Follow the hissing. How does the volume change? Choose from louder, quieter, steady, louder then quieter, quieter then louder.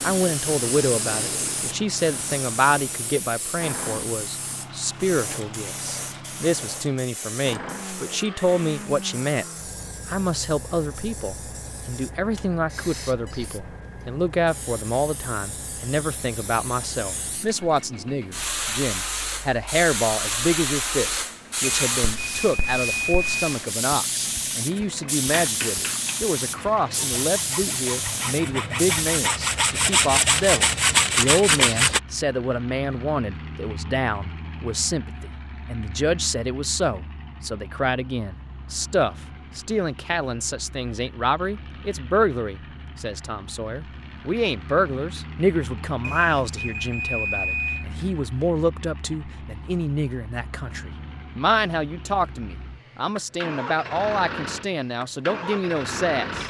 quieter then louder.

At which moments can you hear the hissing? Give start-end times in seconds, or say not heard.
0.0-29.3.